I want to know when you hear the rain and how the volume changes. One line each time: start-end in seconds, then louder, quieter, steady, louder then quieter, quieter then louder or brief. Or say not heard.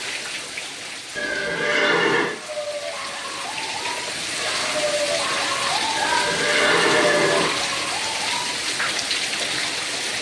0.0-10.1 louder.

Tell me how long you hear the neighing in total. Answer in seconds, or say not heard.
3 s.